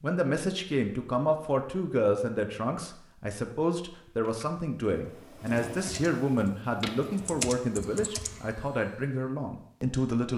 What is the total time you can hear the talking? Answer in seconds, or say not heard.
10 s.